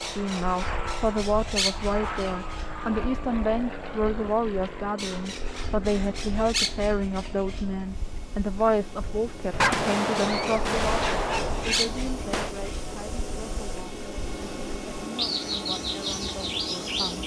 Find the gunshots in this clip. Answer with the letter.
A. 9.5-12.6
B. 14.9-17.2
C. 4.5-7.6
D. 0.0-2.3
A.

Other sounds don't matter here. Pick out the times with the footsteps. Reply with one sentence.
The footsteps can't be heard in this clip.